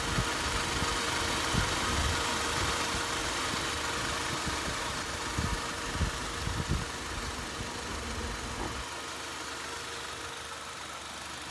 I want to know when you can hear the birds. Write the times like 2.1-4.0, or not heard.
not heard.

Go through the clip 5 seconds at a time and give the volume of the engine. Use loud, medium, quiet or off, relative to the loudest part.
loud, medium, medium.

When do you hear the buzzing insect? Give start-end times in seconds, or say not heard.
0.0-8.8.